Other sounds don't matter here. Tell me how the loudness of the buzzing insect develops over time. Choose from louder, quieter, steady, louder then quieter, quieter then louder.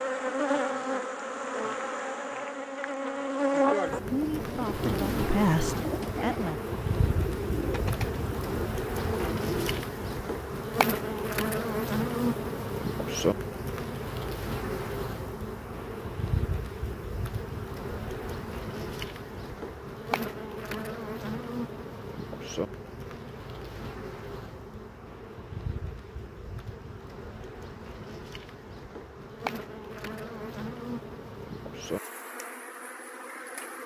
quieter.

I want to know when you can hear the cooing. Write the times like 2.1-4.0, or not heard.
4.0-9.8.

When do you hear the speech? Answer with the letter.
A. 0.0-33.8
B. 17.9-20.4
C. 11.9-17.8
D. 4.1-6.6
D.